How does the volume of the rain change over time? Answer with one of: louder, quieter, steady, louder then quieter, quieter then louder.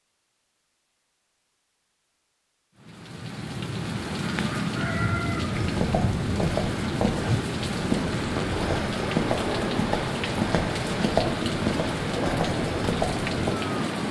steady.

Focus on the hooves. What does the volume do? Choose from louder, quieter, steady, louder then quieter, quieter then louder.
steady.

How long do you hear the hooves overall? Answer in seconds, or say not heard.
8 s.